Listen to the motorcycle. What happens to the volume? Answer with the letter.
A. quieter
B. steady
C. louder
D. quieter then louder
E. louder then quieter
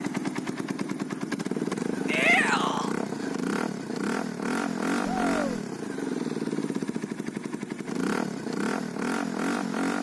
B.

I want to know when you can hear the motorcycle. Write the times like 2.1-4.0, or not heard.
0.0-9.9.